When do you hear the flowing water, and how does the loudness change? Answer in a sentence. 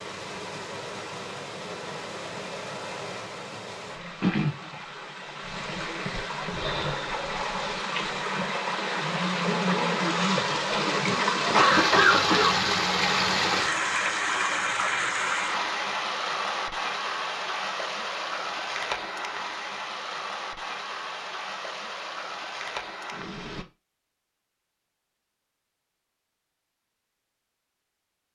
The flowing water can be heard from 0.0 to 23.6 s, getting louder then quieter.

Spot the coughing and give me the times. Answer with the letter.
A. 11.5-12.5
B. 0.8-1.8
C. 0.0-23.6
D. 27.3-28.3
A.